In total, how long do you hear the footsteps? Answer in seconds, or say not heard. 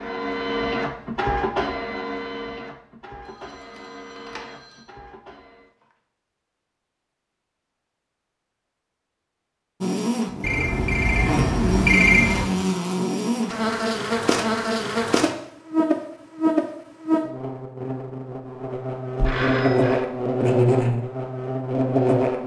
not heard.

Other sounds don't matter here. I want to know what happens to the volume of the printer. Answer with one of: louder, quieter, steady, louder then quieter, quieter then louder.
quieter.